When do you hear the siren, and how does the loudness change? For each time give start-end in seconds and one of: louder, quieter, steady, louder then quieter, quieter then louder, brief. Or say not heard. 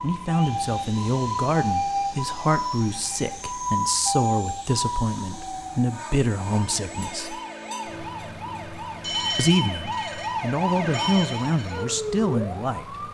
0.0-13.0 quieter then louder.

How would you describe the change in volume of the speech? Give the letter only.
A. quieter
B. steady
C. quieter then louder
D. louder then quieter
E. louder
B.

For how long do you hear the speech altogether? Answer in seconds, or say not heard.
11 s.